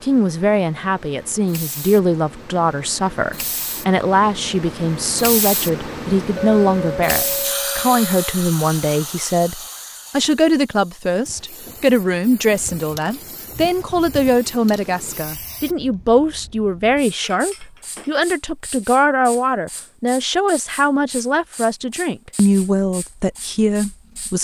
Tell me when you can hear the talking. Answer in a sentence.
The talking can be heard from 0.0 to 24.3 s.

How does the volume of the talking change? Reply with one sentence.
The loudness of the talking stays about the same.